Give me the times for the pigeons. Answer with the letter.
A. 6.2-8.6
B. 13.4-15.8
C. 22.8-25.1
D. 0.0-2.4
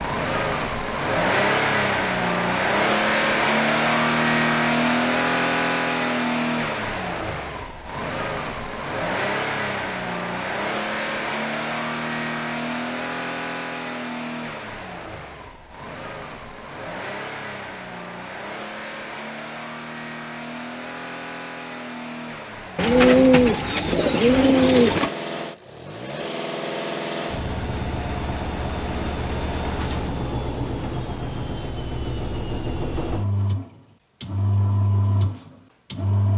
C.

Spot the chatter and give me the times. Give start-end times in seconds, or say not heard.
not heard.